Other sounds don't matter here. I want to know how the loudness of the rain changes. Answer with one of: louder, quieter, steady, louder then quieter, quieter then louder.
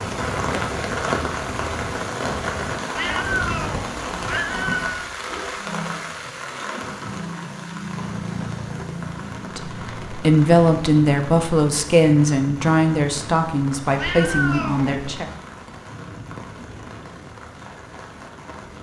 quieter.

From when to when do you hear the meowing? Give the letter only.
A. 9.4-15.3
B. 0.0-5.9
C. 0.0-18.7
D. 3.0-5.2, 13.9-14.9
D.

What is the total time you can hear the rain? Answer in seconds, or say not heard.
19 s.